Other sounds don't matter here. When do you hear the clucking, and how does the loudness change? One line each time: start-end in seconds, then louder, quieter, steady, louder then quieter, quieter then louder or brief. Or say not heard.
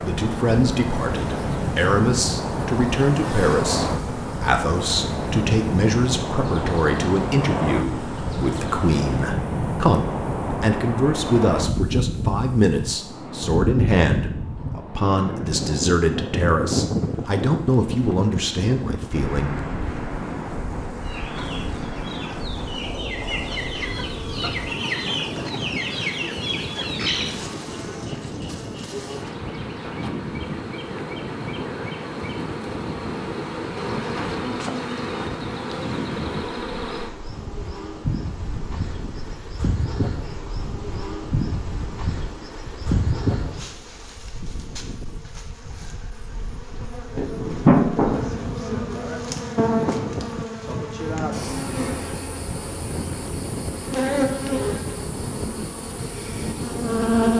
21.0-27.4 louder.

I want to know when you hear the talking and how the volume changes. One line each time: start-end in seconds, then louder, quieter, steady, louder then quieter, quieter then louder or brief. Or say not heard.
0.0-19.5 steady.